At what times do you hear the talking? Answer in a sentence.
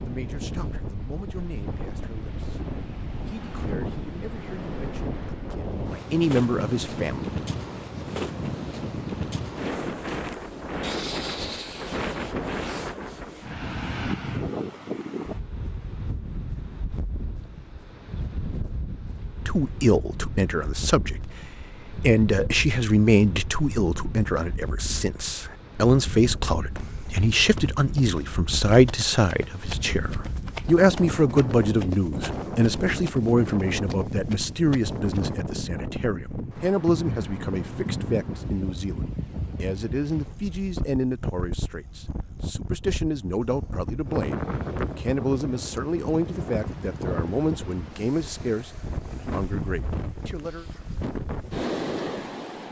The talking can be heard from 0.0 to 7.2 s and from 19.4 to 50.6 s.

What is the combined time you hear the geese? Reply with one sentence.
You can't hear the geese here.